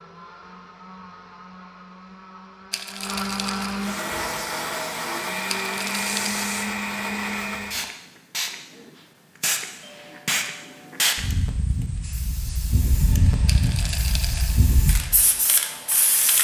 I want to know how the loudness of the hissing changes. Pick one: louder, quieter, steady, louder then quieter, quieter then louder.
louder.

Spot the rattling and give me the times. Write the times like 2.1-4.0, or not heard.
2.7-3.8, 5.5-6.4, 13.4-14.6.